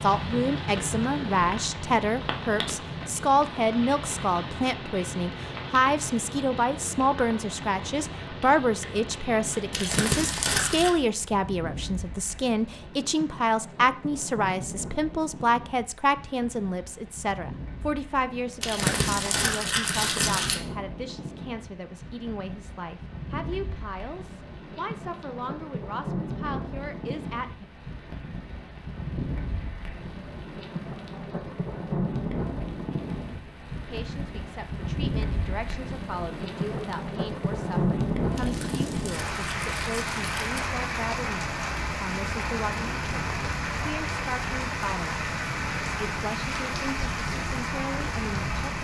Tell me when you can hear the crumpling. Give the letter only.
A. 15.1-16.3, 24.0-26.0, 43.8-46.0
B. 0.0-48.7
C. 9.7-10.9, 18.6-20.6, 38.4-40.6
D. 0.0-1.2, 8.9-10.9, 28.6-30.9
C.